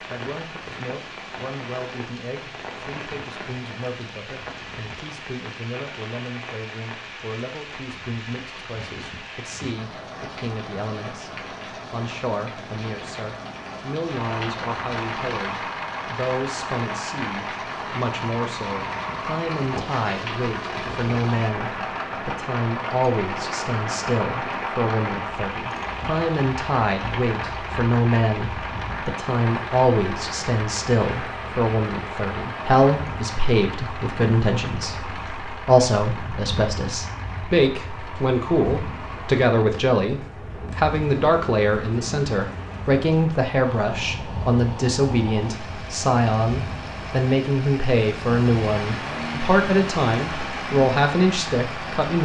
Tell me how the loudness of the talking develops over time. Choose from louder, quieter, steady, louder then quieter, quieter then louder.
louder.